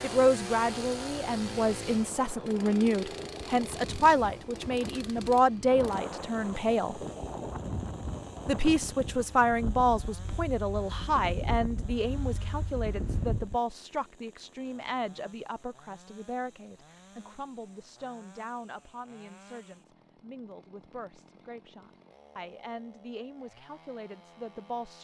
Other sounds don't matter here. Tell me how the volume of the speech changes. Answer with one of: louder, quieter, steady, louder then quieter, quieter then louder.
quieter.